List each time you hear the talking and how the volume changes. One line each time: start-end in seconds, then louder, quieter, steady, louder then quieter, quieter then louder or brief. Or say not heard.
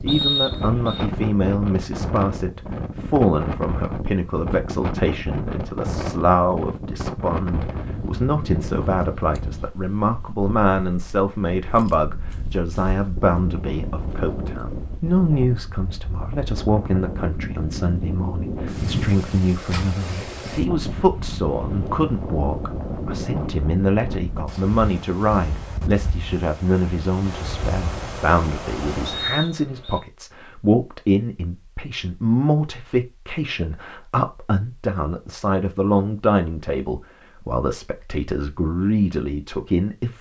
0.0-40.1 steady.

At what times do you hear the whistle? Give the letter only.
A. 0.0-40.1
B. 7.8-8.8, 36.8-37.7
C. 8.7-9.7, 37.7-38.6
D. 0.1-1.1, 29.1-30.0
D.